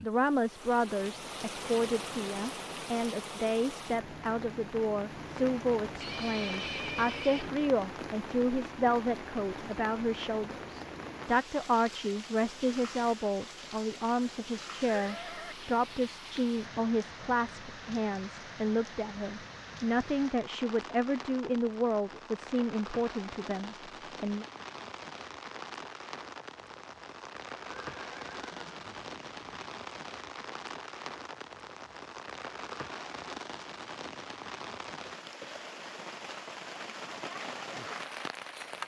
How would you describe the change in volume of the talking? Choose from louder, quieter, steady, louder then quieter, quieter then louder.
steady.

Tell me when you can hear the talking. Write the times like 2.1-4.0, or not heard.
0.0-24.4.